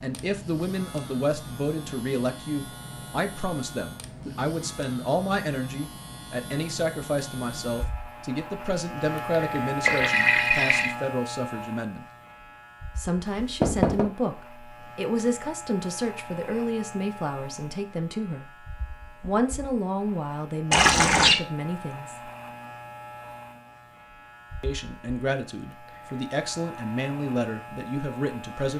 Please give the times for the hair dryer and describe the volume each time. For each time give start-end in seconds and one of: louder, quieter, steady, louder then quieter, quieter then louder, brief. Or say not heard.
not heard.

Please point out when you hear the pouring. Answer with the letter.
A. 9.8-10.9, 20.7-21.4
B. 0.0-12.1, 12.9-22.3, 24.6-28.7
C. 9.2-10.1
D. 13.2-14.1
A.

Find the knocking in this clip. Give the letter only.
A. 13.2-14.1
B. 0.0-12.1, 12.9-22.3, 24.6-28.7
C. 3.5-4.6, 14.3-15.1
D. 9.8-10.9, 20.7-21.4
A.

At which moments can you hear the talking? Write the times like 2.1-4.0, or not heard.
0.0-12.1, 12.9-22.3, 24.6-28.7.